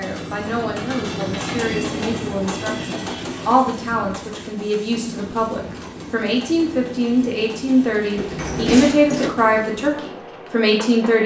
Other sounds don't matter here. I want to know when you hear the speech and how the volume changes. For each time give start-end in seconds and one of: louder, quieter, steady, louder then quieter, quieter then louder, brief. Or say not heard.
0.0-11.2 louder.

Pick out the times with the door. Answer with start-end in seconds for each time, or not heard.
8.2-9.3.